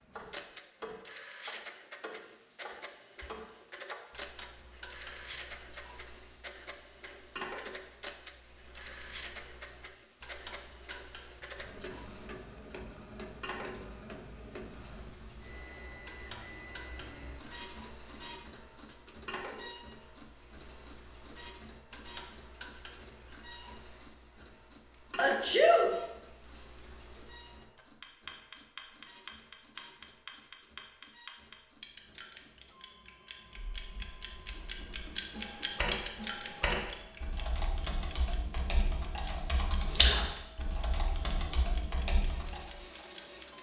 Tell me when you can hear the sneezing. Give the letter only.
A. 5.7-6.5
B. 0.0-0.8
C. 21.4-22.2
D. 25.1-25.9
D.